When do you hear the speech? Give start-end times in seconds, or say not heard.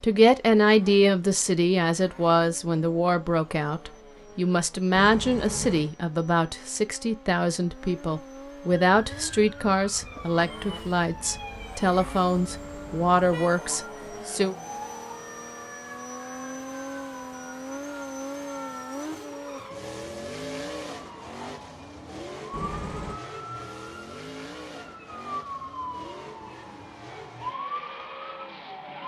0.0-14.6.